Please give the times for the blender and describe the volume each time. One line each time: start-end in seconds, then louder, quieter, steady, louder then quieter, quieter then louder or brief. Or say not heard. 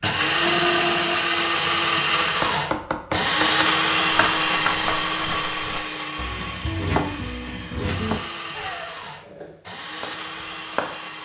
0.0-11.2 quieter.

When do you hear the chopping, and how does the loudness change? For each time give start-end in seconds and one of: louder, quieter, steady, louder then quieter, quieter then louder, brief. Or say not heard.
2.2-11.0 quieter.